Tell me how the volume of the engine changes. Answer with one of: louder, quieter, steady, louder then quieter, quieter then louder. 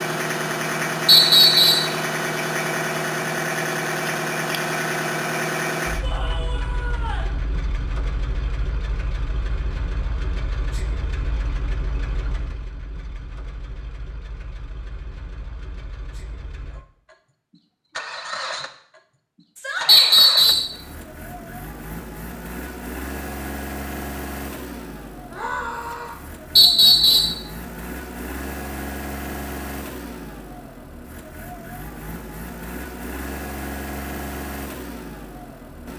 quieter.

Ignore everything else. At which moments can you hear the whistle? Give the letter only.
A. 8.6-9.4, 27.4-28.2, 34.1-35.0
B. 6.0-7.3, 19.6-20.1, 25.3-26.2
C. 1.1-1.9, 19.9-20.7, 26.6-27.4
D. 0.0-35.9
C.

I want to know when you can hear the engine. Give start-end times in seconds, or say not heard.
0.0-35.9.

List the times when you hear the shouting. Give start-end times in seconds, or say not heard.
6.0-7.3, 19.6-20.1, 25.3-26.2.